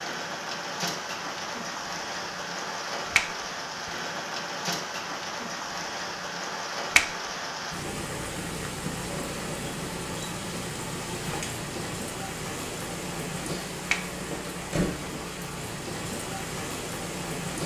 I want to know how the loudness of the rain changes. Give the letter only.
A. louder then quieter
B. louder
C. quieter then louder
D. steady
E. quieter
D.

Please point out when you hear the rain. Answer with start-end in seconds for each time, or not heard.
0.0-17.6.